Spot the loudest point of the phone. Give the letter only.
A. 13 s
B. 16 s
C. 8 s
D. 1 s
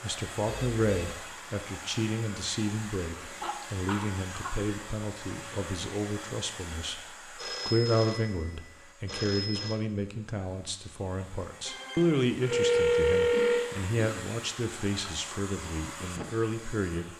A.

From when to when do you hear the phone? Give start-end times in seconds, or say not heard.
0.5-1.2, 7.3-9.8, 11.7-13.7.